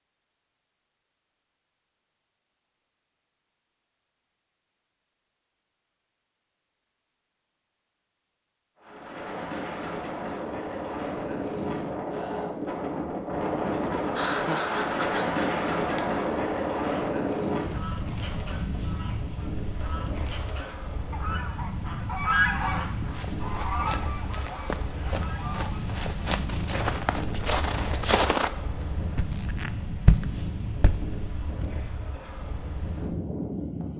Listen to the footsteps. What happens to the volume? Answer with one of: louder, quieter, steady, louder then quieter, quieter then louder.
louder.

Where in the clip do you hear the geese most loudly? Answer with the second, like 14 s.
22 s.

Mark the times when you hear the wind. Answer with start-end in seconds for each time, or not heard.
8.8-33.9.